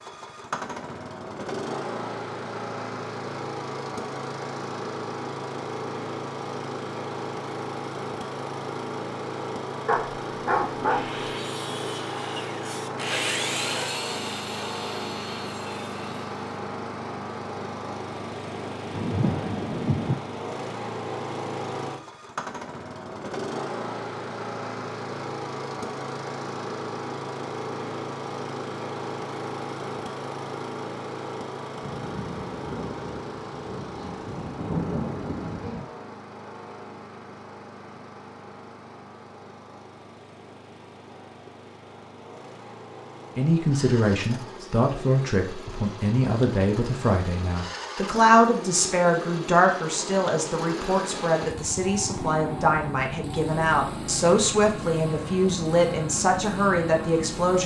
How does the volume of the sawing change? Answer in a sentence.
The volume of the sawing goes up, then down.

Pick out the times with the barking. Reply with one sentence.
The barking can be heard from 9.8 to 11.2 s.